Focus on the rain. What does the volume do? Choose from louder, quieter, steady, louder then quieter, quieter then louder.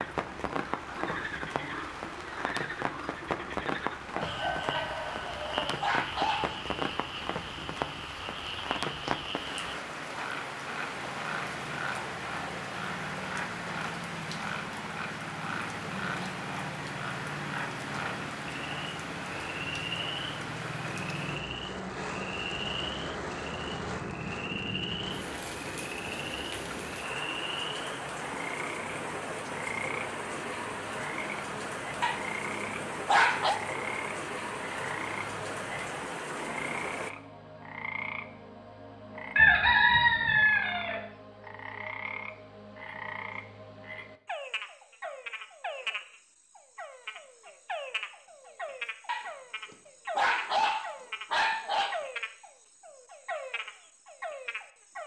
steady.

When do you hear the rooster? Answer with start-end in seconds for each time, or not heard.
4.1-5.8, 39.4-41.0.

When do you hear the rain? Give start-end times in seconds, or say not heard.
0.0-37.1.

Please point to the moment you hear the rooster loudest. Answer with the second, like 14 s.
40 s.